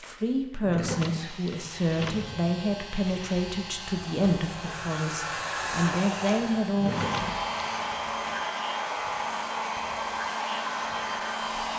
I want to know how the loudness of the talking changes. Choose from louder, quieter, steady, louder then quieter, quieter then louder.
steady.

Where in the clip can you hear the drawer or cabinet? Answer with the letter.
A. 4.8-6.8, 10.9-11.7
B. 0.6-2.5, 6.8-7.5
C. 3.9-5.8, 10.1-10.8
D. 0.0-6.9
B.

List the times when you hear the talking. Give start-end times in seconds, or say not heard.
0.0-6.9.